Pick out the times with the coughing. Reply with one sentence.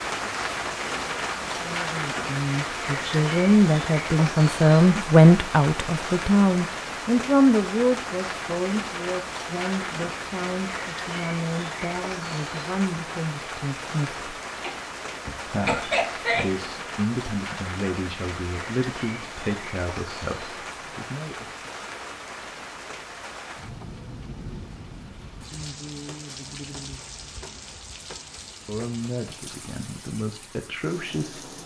The coughing can be heard from 14.6 to 16.6 s.